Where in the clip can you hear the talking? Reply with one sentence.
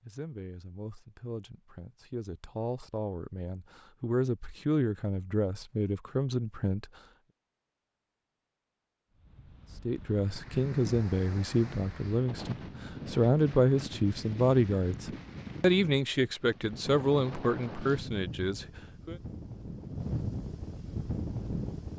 The talking can be heard from 0.0 to 6.8 s and from 9.8 to 19.1 s.